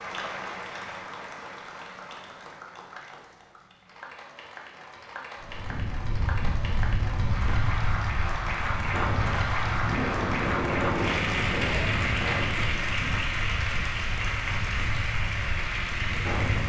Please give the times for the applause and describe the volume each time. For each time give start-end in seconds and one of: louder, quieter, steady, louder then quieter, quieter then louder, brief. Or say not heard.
0.0-16.6 louder.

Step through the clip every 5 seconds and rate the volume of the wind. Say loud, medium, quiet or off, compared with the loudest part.
off, loud, loud, loud.